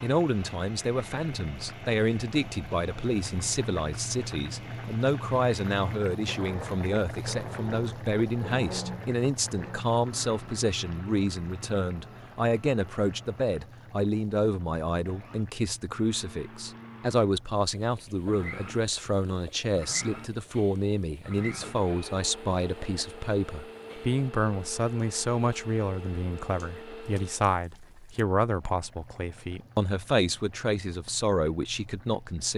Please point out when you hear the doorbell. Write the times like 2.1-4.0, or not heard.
not heard.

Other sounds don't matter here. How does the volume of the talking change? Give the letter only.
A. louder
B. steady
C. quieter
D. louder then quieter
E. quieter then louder
B.